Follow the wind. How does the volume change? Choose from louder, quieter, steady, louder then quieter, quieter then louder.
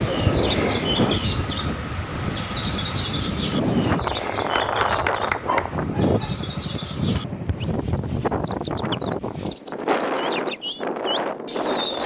steady.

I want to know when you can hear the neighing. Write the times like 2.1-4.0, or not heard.
not heard.